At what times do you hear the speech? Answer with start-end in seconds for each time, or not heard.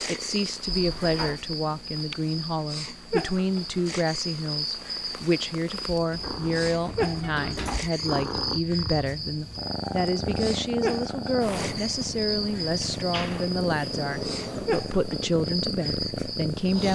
0.1-16.8.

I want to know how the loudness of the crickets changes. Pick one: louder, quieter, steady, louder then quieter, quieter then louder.
steady.